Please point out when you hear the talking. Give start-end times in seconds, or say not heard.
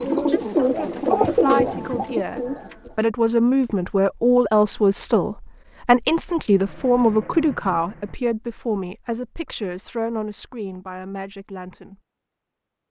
0.0-12.0.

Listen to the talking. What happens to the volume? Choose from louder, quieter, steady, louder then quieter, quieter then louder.
louder then quieter.